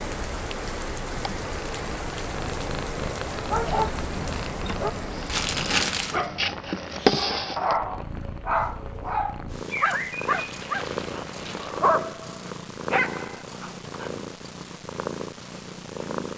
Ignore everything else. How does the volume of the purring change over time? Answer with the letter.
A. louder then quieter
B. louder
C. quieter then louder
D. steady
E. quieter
A.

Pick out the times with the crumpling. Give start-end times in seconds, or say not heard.
5.2-6.2, 10.3-11.8.